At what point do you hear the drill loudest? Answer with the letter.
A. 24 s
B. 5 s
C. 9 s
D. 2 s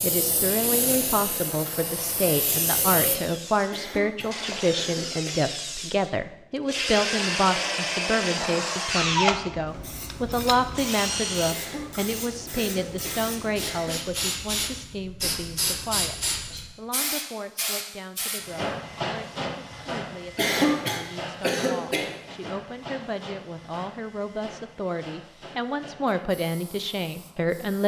C.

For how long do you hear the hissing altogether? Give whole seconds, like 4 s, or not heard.
21 s.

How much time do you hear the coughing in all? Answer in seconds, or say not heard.
6 s.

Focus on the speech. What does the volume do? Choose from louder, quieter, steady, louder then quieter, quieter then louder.
quieter then louder.